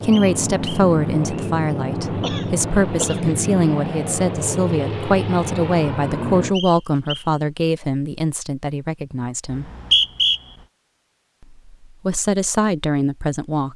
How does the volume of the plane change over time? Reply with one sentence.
The loudness of the plane stays about the same.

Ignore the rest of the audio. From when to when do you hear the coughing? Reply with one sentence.
You can hear the coughing from 2.2 to 3.4 s.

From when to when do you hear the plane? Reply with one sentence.
The plane can be heard from 0.0 to 6.5 s.